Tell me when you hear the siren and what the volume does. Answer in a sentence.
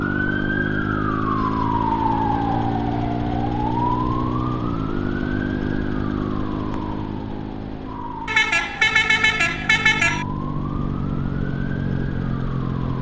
You can hear the siren from 0.0 to 12.9 s, getting quieter.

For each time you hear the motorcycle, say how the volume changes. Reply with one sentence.
The motorcycle can be heard from 0.0 to 12.9 s, getting quieter then louder.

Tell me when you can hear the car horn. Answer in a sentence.
You can hear the car horn from 8.2 to 10.2 s.